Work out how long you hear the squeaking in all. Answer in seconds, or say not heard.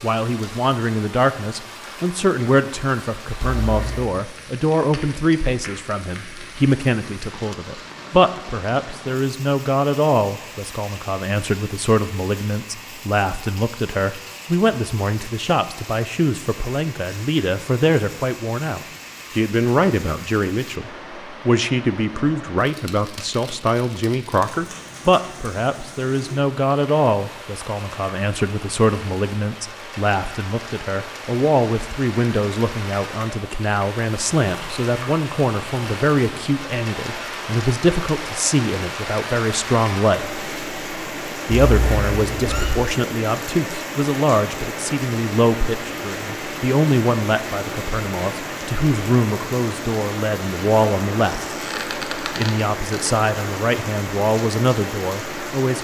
2 s.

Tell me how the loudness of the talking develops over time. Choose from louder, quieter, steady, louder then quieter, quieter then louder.
steady.